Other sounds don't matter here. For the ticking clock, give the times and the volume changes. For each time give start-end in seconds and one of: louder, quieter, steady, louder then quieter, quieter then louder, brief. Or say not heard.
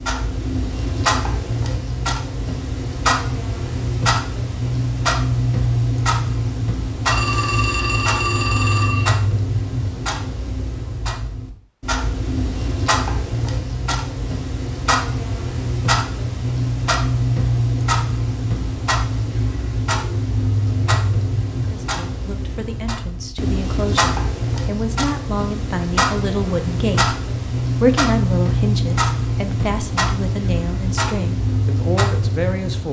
0.0-32.8 steady.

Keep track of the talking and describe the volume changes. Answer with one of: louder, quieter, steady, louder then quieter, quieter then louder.
louder then quieter.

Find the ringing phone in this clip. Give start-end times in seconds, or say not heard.
7.0-9.1.